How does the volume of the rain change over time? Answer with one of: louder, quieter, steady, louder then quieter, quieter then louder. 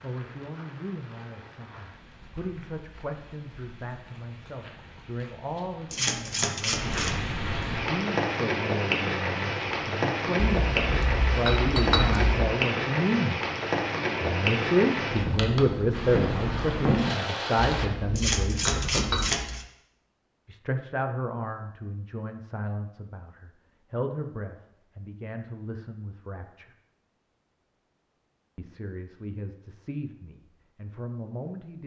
louder.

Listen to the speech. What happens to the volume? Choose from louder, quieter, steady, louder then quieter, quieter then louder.
louder then quieter.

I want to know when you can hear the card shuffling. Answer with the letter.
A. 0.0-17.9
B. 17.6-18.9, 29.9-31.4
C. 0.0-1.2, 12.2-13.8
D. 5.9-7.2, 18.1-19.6
D.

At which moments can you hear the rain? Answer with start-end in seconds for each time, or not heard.
0.0-17.9.